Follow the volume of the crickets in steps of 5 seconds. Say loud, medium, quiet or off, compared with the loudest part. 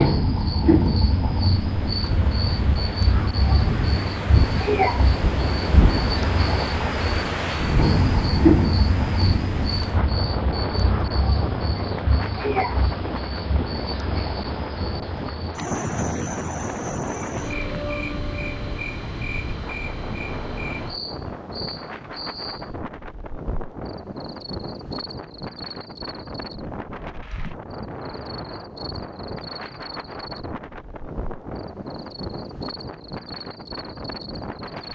loud, loud, medium, medium, quiet, quiet, quiet.